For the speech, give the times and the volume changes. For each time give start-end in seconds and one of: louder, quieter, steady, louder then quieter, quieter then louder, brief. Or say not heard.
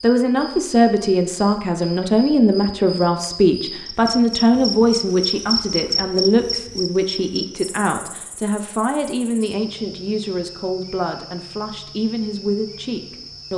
0.0-13.5 quieter.